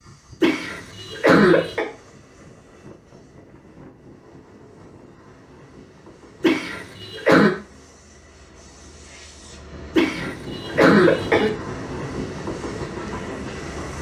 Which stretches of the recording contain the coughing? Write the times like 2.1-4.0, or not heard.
0.4-1.9, 6.4-7.5, 9.9-11.5.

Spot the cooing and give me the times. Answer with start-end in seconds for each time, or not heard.
not heard.